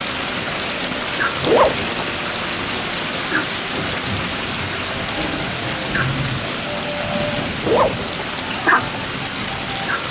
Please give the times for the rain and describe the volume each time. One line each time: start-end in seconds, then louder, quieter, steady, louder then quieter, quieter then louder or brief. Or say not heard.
0.0-10.0 steady.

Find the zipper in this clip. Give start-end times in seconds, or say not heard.
1.4-2.2, 7.6-8.3.